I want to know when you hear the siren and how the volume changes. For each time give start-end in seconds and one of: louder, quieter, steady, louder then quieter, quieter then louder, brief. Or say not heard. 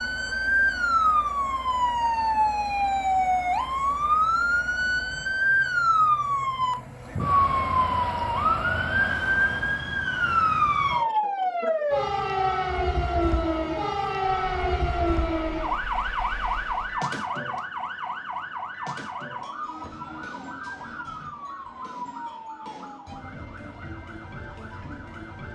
0.0-25.4 quieter.